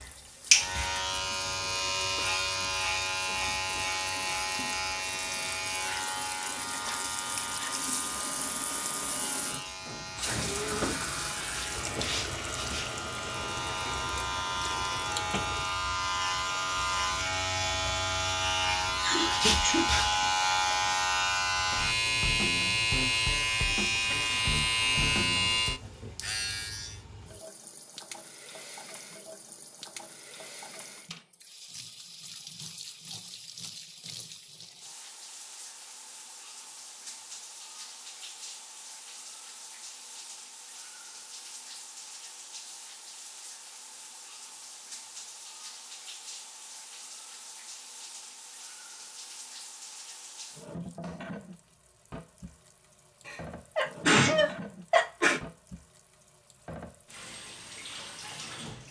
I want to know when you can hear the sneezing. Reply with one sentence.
The sneezing can be heard from 18.9 to 19.9 s and from 53.2 to 55.4 s.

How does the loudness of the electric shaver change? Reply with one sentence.
The loudness of the electric shaver goes down, then up.